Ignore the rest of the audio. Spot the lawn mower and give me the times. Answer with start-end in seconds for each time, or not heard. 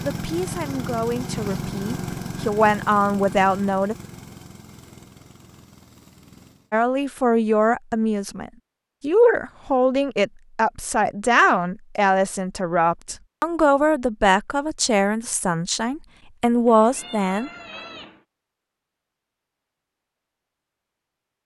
0.0-6.7.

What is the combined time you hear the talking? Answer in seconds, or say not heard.
15 s.